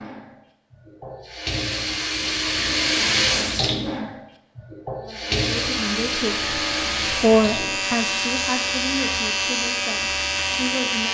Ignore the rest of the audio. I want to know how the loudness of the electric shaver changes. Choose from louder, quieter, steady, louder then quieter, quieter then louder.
louder.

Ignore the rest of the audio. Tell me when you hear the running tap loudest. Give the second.
3 s.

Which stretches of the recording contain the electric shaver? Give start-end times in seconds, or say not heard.
5.6-11.0.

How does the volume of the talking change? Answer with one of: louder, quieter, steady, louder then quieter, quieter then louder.
louder then quieter.